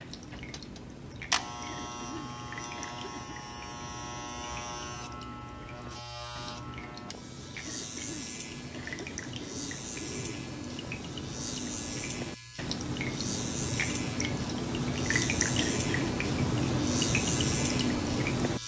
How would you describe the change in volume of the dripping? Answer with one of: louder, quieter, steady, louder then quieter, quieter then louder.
louder.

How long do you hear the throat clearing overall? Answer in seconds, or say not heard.
5 s.